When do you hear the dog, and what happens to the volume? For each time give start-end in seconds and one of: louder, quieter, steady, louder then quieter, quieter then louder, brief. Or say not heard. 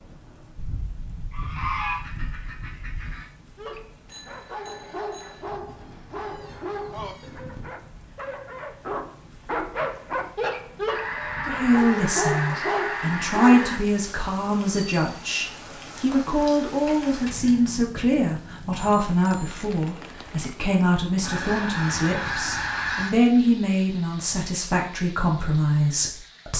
3.5-13.8 louder.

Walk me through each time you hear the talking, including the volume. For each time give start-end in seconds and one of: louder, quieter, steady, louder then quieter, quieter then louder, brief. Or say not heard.
11.4-26.5 steady.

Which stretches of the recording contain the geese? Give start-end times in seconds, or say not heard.
0.6-3.3, 5.7-7.7, 10.8-13.8, 15.9-17.8, 21.2-23.1.